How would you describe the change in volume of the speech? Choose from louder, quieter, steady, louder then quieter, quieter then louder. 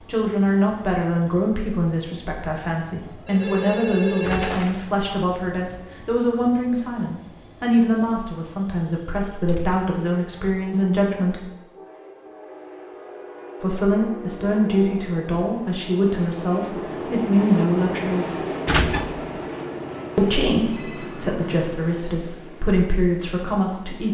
steady.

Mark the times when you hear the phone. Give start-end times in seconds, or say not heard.
3.2-4.8, 20.7-21.6.